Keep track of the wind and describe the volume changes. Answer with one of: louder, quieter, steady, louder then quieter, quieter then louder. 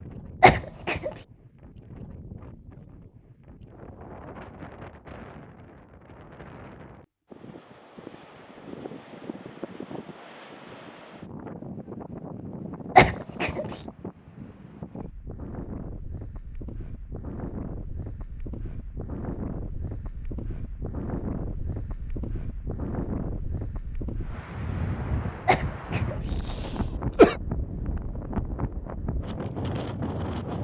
louder.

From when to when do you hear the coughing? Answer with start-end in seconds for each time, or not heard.
0.4-1.1, 12.9-13.7, 25.4-27.4.